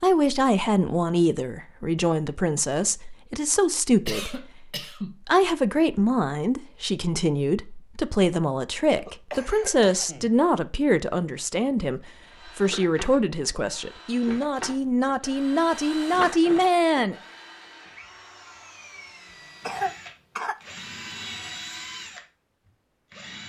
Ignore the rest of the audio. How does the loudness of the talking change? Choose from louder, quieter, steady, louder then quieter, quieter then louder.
steady.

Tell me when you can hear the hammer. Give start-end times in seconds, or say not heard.
not heard.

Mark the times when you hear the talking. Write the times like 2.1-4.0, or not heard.
0.0-17.1.